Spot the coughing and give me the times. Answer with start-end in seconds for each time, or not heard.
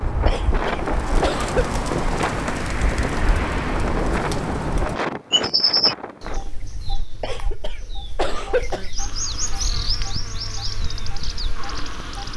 0.2-1.8, 7.2-8.9.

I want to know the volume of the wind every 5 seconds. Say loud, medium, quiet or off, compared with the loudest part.
loud, loud, off.